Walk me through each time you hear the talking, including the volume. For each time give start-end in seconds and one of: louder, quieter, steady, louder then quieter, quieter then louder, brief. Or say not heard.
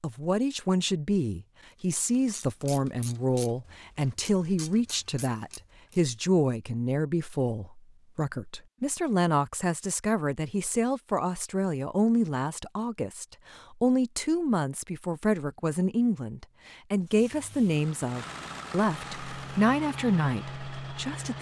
0.0-21.3 steady.